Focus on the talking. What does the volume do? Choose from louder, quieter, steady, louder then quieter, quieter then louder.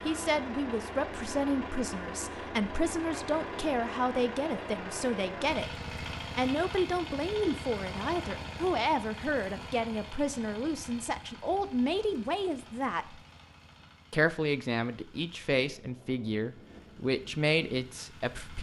steady.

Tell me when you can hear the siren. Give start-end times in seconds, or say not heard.
not heard.